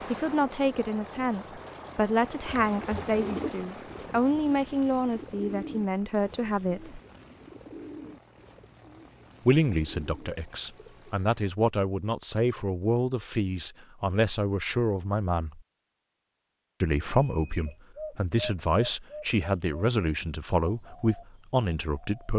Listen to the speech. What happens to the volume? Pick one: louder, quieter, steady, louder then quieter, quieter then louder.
steady.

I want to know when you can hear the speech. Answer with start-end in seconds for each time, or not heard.
0.1-7.0, 9.4-15.6, 16.8-22.3.